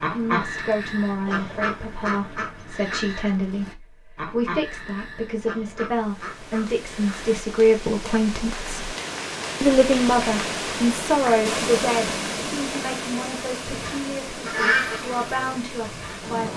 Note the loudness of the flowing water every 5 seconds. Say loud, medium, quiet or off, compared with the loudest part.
off, medium, loud, medium.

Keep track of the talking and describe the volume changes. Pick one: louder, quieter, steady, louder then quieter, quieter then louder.
louder then quieter.